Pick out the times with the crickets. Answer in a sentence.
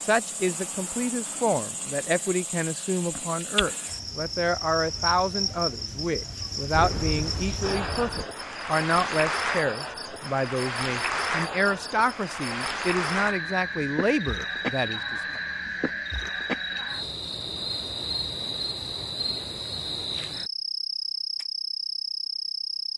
You can hear the crickets from 0.0 to 22.9 s.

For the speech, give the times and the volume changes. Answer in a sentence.
The speech can be heard from 0.0 to 15.4 s, at a steady volume.